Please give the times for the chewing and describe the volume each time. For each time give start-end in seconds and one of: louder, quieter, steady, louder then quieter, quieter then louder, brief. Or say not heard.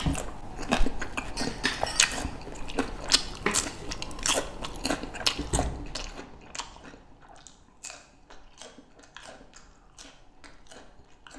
0.0-11.3 quieter.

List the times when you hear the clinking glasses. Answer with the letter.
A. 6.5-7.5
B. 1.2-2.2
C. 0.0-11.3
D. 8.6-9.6
B.